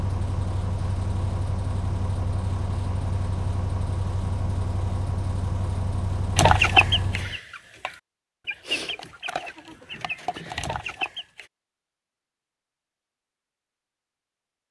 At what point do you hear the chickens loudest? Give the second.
7 s.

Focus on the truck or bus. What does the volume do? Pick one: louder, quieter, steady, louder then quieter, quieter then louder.
steady.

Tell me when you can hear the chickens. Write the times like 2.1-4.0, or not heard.
6.3-11.4.